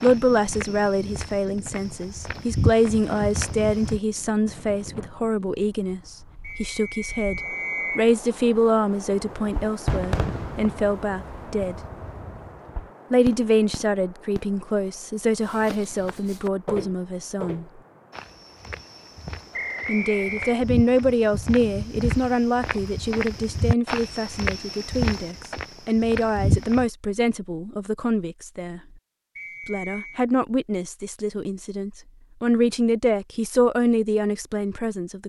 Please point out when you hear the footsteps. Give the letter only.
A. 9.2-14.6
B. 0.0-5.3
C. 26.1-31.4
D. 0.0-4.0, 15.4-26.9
D.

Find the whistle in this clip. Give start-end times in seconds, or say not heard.
6.4-8.1, 19.5-20.6, 29.4-30.2.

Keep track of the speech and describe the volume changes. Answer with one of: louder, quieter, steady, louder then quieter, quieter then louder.
steady.